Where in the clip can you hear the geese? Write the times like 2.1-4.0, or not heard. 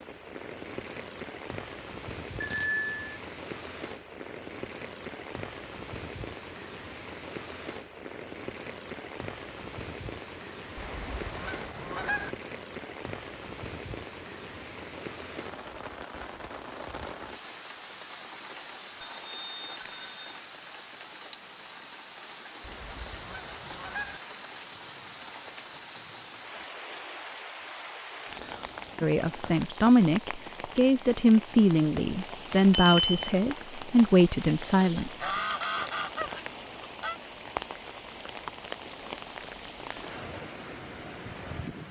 10.8-12.3, 22.6-24.2, 35.0-37.2.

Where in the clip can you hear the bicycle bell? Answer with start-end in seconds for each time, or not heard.
2.4-3.2, 19.0-20.4, 32.7-33.3.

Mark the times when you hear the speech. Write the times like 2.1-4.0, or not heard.
29.0-35.4.